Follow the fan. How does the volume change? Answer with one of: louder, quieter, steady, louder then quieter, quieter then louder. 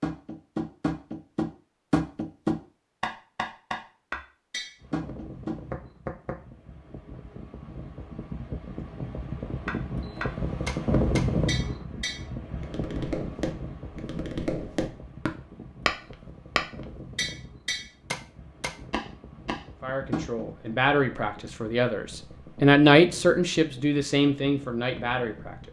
louder then quieter.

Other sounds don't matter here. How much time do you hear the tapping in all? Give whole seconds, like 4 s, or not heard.
17 s.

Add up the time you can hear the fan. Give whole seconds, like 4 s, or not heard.
21 s.